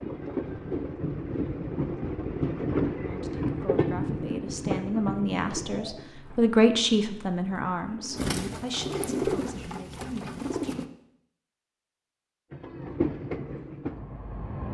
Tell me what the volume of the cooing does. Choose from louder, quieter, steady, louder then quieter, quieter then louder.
louder then quieter.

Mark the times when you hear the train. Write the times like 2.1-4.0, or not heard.
0.0-6.2, 12.5-14.6.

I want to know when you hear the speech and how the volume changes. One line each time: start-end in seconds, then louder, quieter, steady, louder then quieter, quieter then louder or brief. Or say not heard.
3.0-10.8 louder then quieter.